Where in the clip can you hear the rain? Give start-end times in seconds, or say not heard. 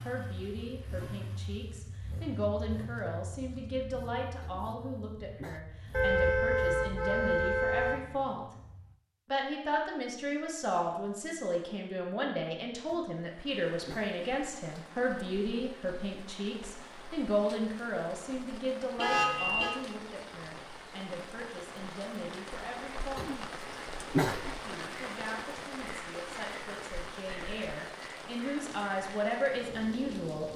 13.2-30.5.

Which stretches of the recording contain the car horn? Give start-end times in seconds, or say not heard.
5.9-8.0, 18.9-19.8.